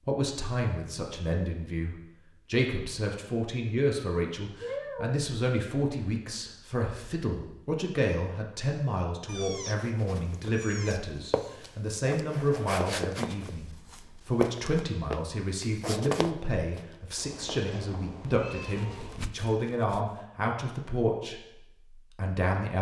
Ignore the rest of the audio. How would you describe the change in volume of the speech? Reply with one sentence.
The volume of the speech stays about the same.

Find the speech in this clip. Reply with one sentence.
The speech can be heard from 0.1 to 22.7 s.